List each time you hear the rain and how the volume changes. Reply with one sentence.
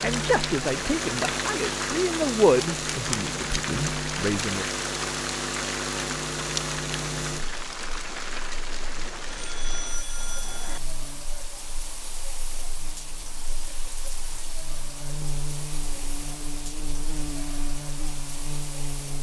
The rain can be heard from 0.0 to 19.1 s, getting quieter.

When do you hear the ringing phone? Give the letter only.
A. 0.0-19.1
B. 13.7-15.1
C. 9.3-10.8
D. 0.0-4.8
C.